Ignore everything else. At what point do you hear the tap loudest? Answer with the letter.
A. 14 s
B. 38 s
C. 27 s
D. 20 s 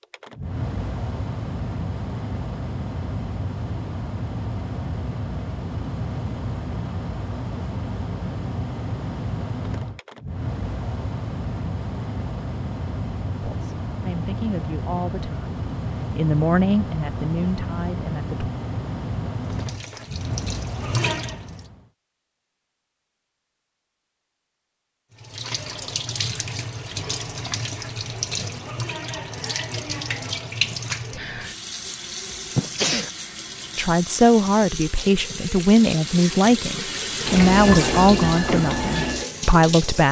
B.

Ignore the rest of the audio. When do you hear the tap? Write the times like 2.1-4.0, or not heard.
19.4-21.7, 25.1-40.0.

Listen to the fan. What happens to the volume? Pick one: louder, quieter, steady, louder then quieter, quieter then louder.
steady.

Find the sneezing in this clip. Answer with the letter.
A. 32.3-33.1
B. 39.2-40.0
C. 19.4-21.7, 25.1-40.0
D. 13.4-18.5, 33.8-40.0
A.